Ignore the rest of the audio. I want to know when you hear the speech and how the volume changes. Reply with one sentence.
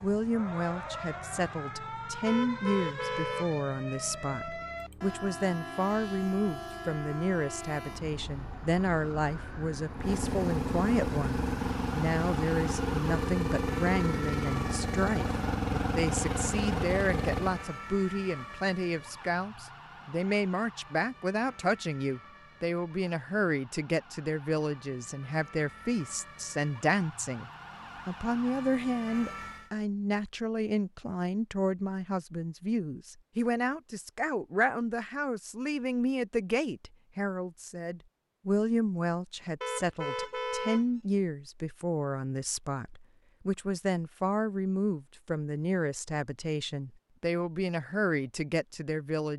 You can hear the speech from 0.0 to 49.3 s, at a steady volume.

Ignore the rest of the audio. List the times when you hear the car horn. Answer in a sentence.
You can hear the car horn from 2.2 to 3.5 s and from 39.6 to 40.9 s.